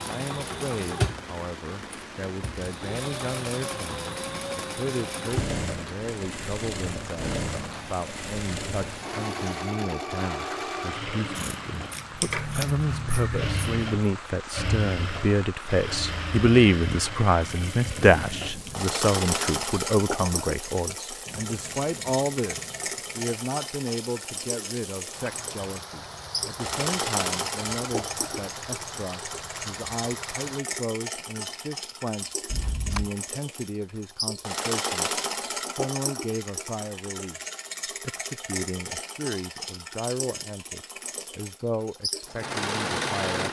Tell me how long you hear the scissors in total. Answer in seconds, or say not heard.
3 s.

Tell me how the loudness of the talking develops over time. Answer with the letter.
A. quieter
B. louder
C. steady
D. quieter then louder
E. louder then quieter
E.